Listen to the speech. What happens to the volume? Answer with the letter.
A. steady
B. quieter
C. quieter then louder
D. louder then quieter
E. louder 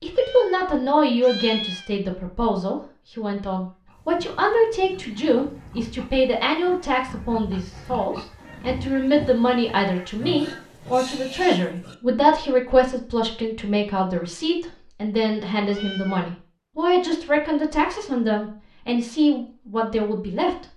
A.